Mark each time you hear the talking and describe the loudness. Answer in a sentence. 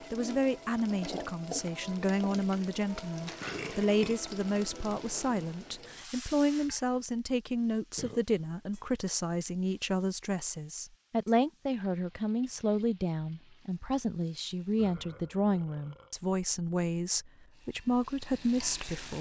You can hear the talking from 0.1 to 19.1 s, at a steady volume.